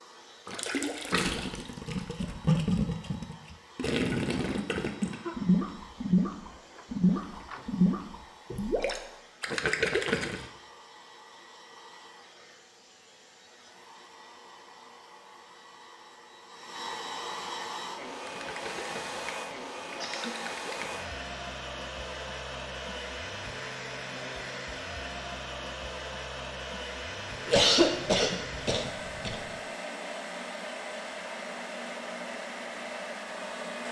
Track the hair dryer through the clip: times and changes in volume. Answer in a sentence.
You can hear the hair dryer from 0.0 to 33.8 s, getting louder.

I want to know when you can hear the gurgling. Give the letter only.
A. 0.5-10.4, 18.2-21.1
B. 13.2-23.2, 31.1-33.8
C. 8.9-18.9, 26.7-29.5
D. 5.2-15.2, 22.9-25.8
A.